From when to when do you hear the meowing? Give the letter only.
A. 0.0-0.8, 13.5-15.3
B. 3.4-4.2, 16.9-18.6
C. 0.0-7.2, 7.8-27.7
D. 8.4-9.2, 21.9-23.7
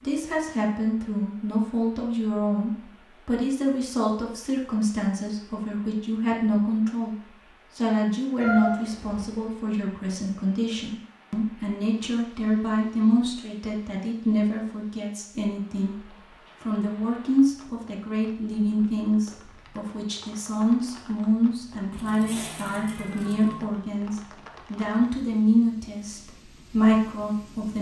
D.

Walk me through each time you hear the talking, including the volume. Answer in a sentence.
You can hear the talking from 0.0 to 7.2 s, at a steady volume; and from 7.8 to 27.7 s, at a steady volume.